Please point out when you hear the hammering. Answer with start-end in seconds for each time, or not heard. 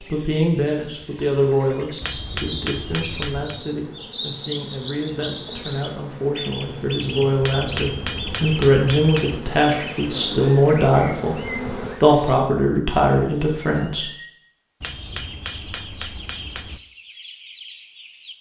2.0-3.6, 7.4-9.4, 14.8-16.8.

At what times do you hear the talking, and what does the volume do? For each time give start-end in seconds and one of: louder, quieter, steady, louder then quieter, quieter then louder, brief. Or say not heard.
0.0-14.1 quieter then louder.